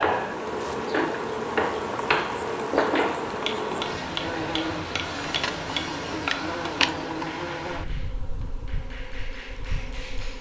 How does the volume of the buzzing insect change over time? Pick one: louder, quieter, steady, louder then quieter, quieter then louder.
quieter.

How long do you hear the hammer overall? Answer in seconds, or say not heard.
10 s.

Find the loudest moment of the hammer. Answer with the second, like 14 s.
3 s.